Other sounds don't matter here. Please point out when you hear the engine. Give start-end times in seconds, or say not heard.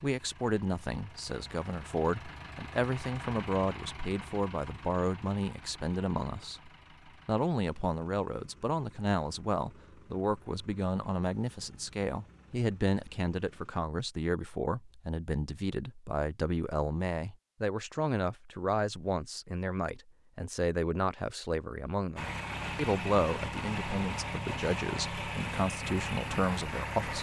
0.0-13.8, 22.1-27.1.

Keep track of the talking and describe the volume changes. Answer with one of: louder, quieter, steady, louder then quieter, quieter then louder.
steady.